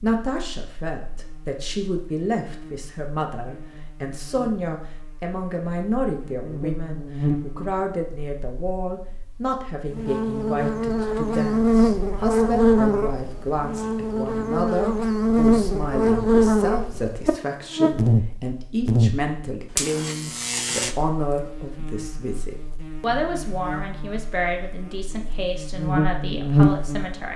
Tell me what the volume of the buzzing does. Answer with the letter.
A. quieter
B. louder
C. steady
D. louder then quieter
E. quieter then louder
D.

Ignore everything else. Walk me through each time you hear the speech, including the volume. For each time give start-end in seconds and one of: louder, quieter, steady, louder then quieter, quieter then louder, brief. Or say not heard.
0.0-27.3 steady.